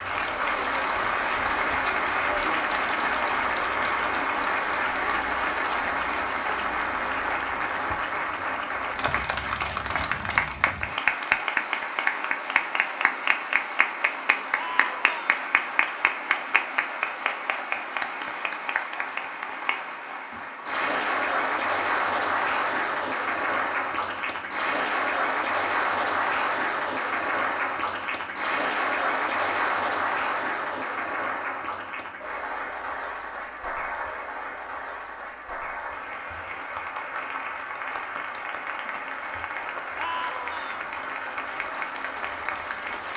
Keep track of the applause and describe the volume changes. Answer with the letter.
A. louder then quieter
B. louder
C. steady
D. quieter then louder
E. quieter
E.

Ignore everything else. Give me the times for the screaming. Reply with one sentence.
The screaming can be heard from 14.6 to 15.3 s and from 40.0 to 40.9 s.